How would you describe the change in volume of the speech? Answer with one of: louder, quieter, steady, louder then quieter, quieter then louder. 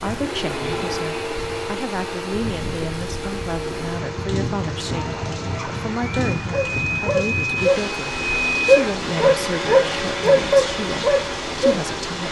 steady.